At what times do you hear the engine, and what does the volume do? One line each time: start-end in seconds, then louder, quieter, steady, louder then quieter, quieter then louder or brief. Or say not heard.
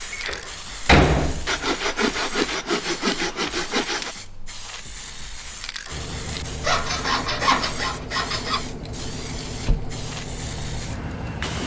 5.9-11.6 steady.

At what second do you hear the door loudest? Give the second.
1 s.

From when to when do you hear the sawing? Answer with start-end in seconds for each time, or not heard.
1.4-4.2, 6.6-8.7.